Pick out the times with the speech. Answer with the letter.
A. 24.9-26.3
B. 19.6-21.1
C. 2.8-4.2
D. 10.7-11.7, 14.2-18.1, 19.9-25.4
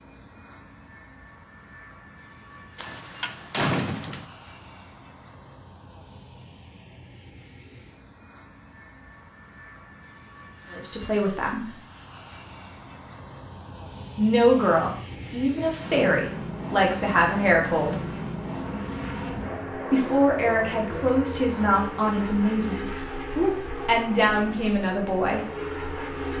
D.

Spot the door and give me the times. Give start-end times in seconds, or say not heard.
2.8-4.2.